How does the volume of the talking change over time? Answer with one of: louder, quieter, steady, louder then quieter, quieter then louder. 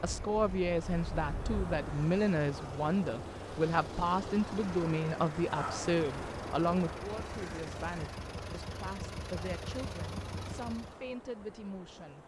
quieter.